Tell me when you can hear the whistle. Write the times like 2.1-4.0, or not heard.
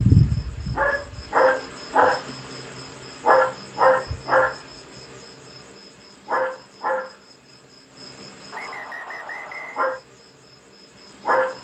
8.5-9.8.